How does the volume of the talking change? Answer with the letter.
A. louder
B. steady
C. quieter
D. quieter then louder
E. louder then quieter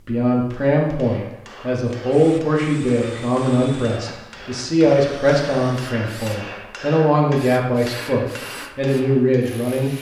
B.